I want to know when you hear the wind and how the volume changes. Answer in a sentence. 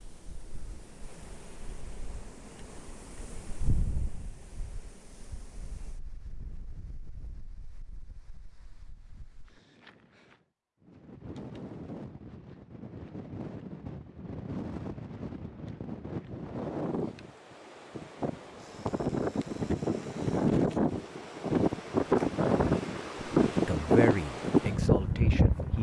You can hear the wind from 0.0 to 25.7 s, getting quieter then louder.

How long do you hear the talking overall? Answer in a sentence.
You can hear the talking for 2 seconds altogether.